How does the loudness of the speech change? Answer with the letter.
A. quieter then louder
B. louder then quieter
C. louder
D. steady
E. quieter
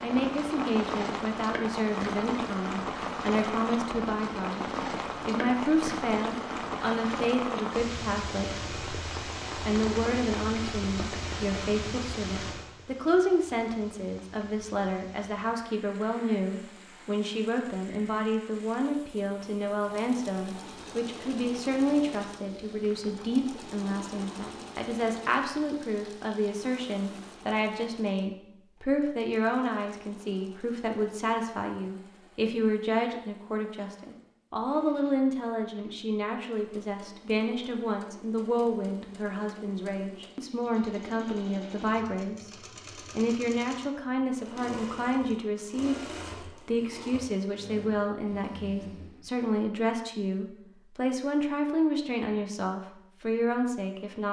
D.